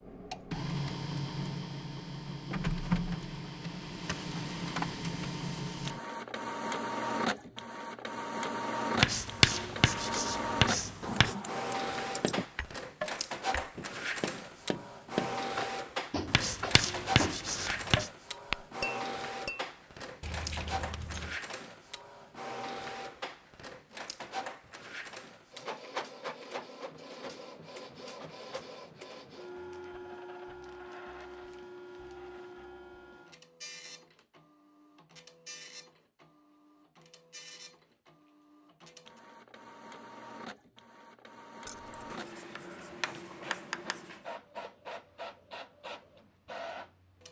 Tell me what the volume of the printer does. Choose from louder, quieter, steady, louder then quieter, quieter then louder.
quieter.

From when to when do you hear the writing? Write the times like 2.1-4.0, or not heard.
8.9-11.3, 16.2-18.1, 42.1-44.2.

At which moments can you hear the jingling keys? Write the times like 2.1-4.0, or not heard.
11.0-12.4, 20.2-21.4, 41.6-42.1.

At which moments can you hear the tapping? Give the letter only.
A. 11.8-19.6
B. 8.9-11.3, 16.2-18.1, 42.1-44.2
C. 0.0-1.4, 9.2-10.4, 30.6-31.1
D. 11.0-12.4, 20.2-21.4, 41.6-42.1
A.